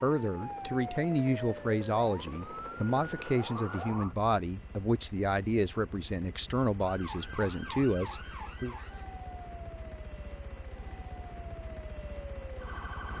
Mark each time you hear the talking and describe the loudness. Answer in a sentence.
The talking can be heard from 0.0 to 8.8 s, at a steady volume.